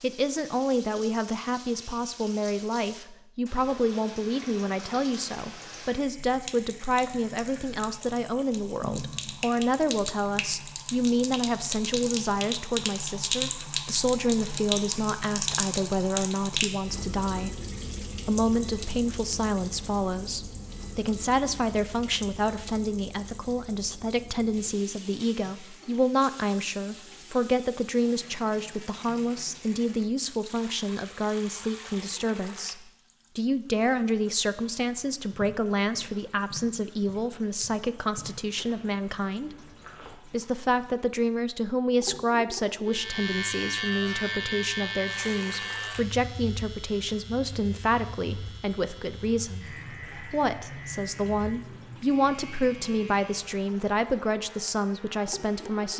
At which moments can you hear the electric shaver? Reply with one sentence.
You can hear the electric shaver from 42.9 to 55.9 s.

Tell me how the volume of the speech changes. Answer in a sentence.
The loudness of the speech stays about the same.